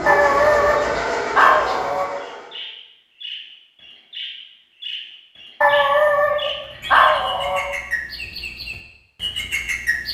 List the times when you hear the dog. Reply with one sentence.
You can hear the dog from 0.1 to 2.0 s and from 5.6 to 7.6 s.